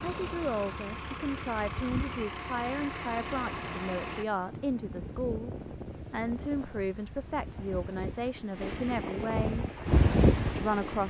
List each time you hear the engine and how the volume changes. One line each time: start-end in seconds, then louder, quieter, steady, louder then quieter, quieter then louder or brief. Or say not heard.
0.0-4.2 steady.